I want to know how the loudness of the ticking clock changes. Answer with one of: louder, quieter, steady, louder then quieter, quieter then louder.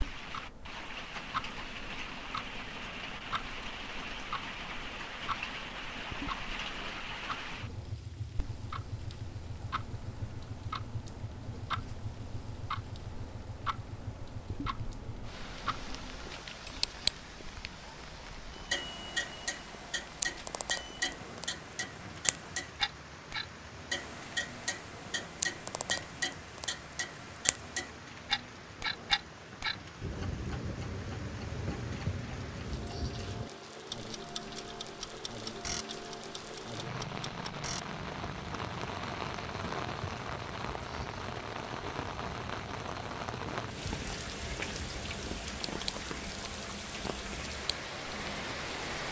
louder then quieter.